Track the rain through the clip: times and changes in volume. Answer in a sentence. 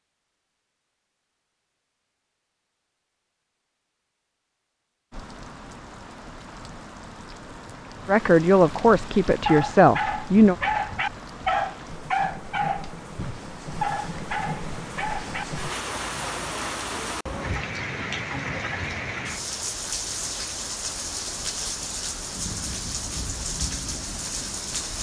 You can hear the rain from 5.1 to 24.9 s, getting louder.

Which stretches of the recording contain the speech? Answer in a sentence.
The speech can be heard from 8.1 to 10.6 s.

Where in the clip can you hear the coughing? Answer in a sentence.
You can't hear the coughing here.